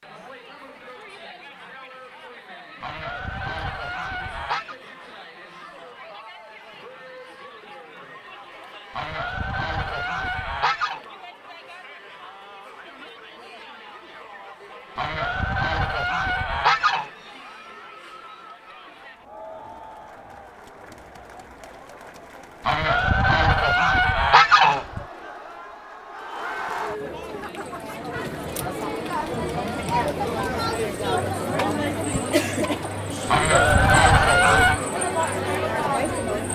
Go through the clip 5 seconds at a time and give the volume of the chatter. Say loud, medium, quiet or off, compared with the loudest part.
quiet, quiet, quiet, quiet, quiet, medium, loud, loud.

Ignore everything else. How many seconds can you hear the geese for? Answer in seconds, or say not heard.
10 s.